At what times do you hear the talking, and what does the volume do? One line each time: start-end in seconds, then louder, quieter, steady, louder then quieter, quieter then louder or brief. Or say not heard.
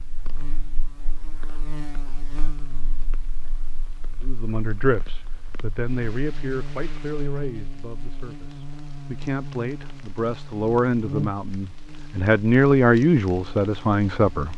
4.2-14.5 quieter then louder.